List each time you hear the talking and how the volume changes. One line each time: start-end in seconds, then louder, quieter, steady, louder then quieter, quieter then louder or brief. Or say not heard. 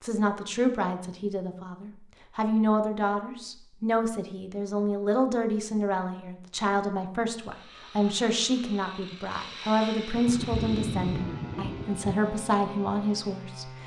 0.0-13.7 steady.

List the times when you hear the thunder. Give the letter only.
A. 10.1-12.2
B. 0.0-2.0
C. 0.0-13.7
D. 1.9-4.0
A.